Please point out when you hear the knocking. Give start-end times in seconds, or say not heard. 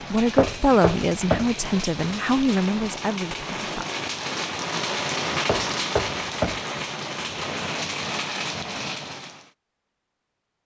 0.3-1.6, 5.5-6.7.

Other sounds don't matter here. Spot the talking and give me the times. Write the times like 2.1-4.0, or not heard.
0.1-3.9.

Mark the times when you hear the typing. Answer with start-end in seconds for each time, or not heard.
not heard.